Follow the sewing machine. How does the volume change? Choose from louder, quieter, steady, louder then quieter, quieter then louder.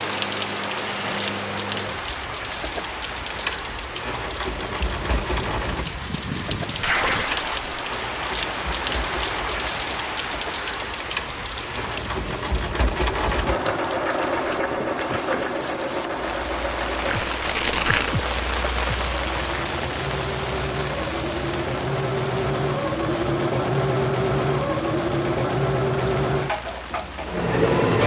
louder.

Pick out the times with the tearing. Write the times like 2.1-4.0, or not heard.
6.8-7.8, 17.1-18.1.